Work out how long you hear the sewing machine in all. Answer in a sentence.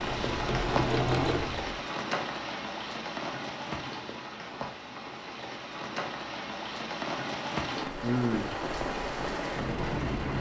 The sewing machine can be heard for 2 seconds in total.